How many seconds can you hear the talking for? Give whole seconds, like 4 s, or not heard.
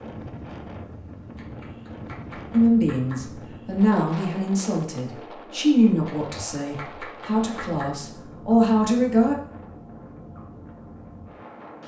7 s.